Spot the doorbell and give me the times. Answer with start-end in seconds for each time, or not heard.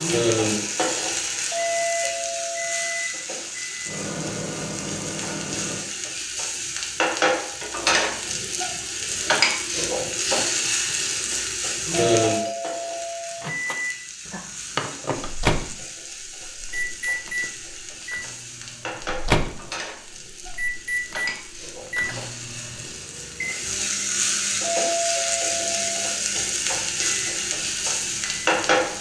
1.5-3.0, 12.1-13.4, 24.6-26.1.